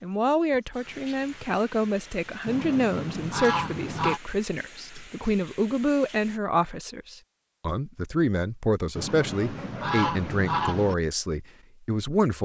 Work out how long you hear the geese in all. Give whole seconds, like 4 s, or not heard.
4 s.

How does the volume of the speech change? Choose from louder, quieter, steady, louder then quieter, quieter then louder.
steady.